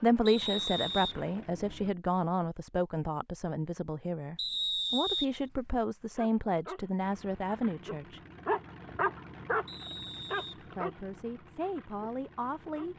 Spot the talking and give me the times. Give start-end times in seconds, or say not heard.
0.0-8.2, 10.7-12.9.